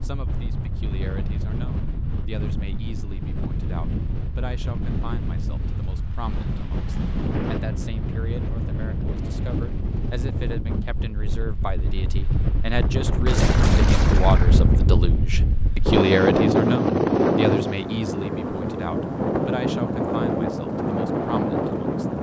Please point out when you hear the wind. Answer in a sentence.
You can hear the wind from 0.0 to 22.1 s.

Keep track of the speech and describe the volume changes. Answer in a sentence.
The loudness of the speech goes up, then down.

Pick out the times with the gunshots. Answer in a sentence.
You can hear the gunshots from 13.2 to 14.8 s.